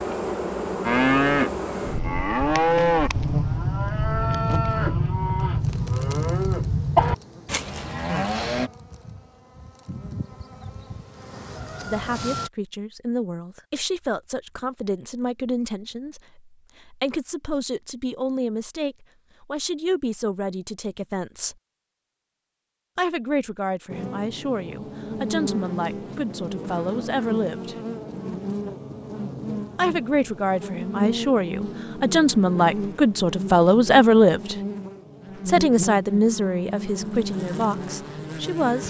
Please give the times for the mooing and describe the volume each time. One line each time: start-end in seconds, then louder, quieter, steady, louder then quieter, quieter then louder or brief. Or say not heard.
0.8-8.7 steady.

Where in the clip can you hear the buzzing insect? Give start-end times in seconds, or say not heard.
0.0-12.5, 23.9-38.8.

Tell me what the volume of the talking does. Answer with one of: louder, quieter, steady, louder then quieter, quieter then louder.
louder.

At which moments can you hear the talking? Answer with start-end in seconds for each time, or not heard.
11.8-21.6, 22.9-27.8, 29.8-34.5, 35.5-38.8.